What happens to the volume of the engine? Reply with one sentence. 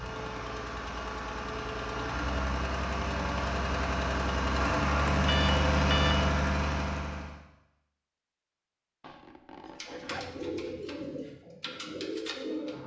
The volume of the engine goes up.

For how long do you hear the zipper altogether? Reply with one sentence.
You can hear the zipper for 2 seconds altogether.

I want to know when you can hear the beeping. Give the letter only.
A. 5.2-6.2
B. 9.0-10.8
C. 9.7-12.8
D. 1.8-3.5
A.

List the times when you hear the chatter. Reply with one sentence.
The chatter can't be heard in this clip.